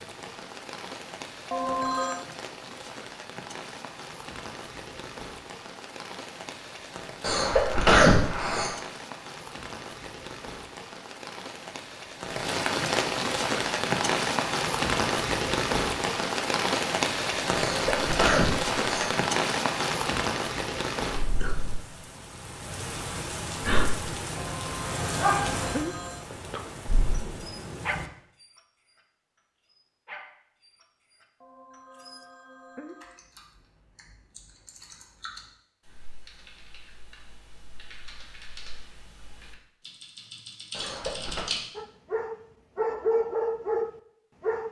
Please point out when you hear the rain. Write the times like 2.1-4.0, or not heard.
0.0-28.1.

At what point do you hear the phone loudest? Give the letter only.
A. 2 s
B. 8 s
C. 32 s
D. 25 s
A.